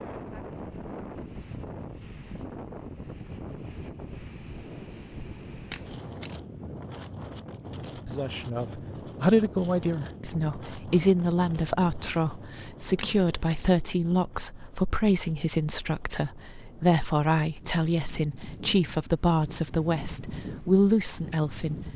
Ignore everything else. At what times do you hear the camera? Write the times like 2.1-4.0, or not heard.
5.7-6.4, 12.9-13.7.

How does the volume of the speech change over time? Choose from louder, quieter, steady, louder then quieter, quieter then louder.
steady.